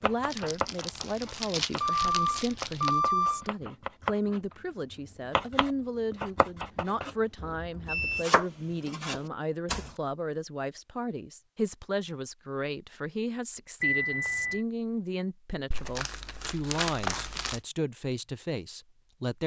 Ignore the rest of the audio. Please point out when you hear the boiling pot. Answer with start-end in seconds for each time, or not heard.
not heard.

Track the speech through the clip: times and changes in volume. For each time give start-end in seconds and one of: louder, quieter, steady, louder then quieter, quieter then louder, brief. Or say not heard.
0.0-19.4 steady.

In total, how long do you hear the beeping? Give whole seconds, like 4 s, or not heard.
3 s.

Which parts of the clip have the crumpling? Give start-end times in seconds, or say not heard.
0.3-3.0, 15.7-17.6.